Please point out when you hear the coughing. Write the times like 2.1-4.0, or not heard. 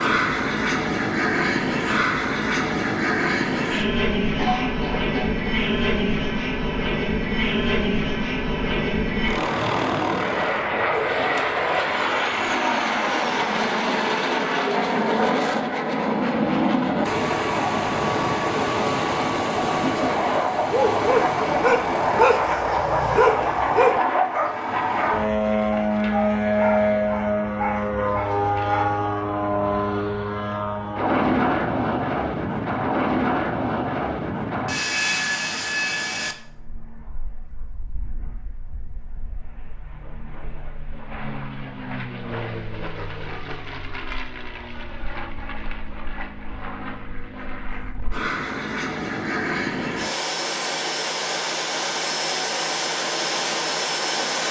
4.3-5.4.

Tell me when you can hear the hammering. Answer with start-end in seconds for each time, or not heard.
not heard.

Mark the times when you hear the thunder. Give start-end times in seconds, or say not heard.
not heard.